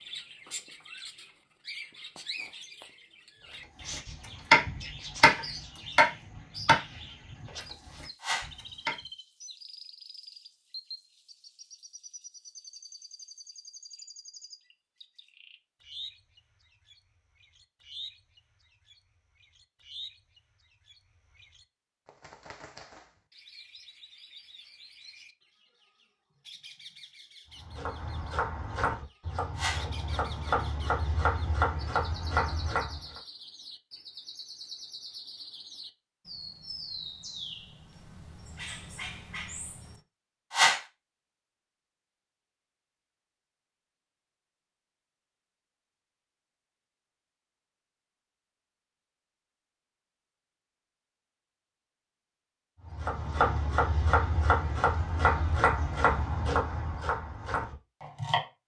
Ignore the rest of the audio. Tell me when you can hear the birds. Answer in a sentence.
The birds can be heard from 0.0 to 40.0 s.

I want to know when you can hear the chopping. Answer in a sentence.
The chopping can be heard from 3.5 to 8.9 s, from 27.6 to 33.2 s and from 52.9 to 58.5 s.